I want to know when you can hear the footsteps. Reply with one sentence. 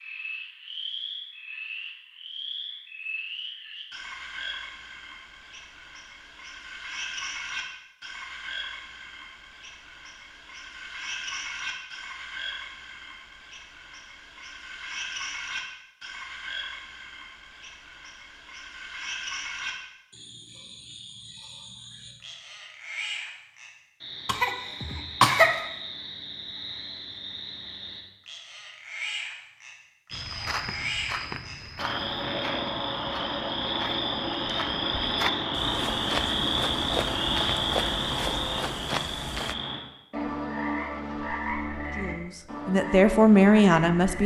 The footsteps can be heard from 30.1 to 39.5 s.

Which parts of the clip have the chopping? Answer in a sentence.
The chopping can't be heard in this clip.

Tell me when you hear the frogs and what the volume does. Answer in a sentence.
The frogs can be heard from 0.0 to 44.2 s, getting louder.